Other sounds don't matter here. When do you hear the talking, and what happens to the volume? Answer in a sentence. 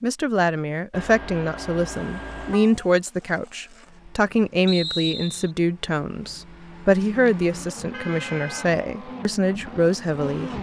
You can hear the talking from 0.0 to 10.5 s, at a steady volume.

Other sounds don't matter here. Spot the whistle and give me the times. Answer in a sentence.
The whistle can be heard from 4.7 to 5.5 s.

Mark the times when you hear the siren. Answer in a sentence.
You can't hear the siren here.